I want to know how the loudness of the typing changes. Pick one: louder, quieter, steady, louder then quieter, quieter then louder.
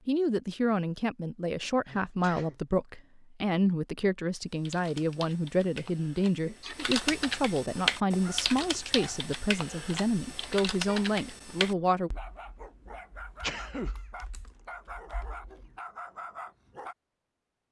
louder then quieter.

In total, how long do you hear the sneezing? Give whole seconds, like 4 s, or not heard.
2 s.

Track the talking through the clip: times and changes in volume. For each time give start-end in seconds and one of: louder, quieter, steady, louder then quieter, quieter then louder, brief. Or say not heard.
0.1-12.1 steady.